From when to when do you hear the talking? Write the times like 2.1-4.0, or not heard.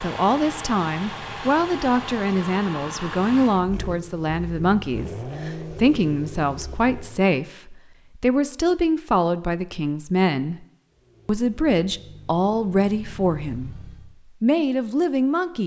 0.0-10.7, 11.2-13.8, 14.4-15.6.